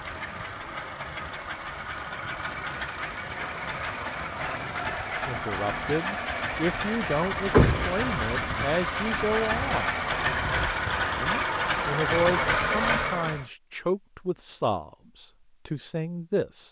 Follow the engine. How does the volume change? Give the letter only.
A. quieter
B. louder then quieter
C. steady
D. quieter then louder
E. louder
E.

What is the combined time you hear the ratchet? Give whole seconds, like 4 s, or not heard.
not heard.